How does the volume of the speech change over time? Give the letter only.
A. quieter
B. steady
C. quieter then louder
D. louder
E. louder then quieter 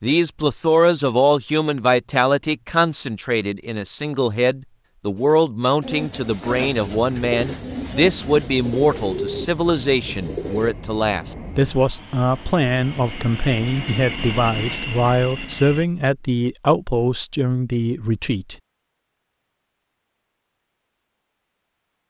B.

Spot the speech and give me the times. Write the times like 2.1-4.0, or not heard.
0.0-18.6.